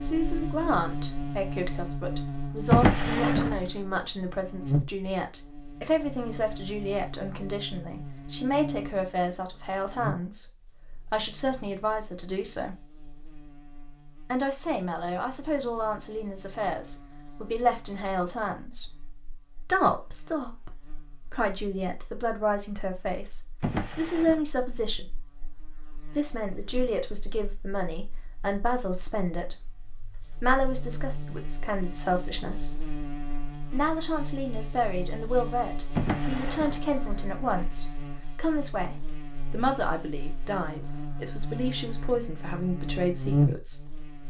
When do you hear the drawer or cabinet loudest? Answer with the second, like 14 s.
3 s.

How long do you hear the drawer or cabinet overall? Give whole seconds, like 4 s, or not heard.
3 s.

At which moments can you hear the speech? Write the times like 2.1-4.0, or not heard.
0.0-12.8, 14.3-19.0, 19.6-25.1, 26.1-29.6, 30.4-32.8, 33.7-43.9.